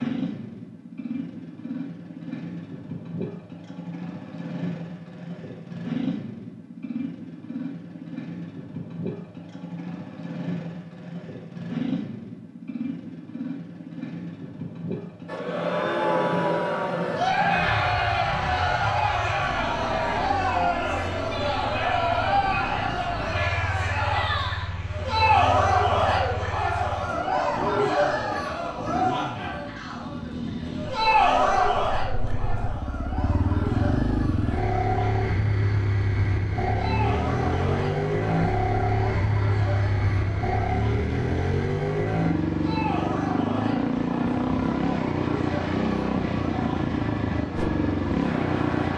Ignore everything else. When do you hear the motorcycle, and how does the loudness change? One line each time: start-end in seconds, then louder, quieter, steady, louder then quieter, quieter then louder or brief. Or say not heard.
0.0-48.9 louder.